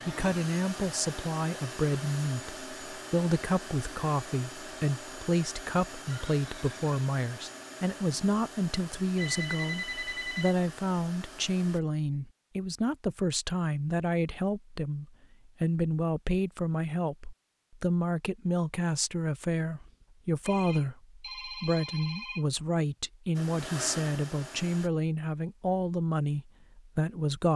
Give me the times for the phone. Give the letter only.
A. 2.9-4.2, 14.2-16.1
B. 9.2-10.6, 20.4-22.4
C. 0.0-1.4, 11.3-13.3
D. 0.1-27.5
B.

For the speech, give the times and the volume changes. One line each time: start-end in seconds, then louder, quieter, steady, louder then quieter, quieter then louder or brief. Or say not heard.
0.1-27.5 steady.